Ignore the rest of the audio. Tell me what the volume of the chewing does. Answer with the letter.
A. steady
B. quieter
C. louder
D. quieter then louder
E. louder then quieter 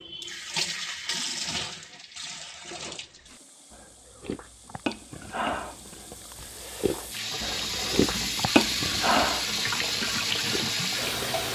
C.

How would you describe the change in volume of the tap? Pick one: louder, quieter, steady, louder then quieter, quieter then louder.
quieter then louder.